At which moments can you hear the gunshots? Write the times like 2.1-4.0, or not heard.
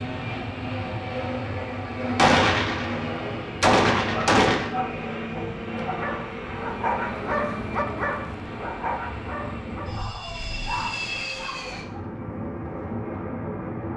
2.1-4.7.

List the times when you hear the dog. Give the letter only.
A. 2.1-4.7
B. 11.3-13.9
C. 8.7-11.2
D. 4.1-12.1
D.